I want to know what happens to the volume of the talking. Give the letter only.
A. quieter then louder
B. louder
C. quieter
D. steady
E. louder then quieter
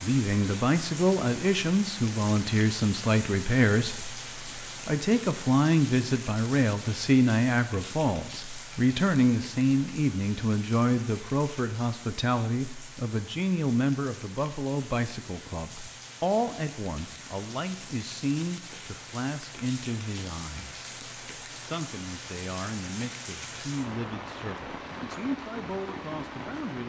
C.